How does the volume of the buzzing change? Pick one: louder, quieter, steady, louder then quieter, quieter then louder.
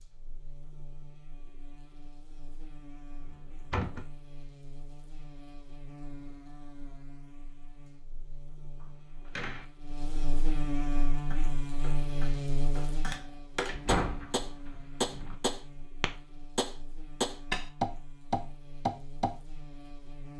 louder then quieter.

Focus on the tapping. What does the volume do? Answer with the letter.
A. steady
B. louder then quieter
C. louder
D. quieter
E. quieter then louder
C.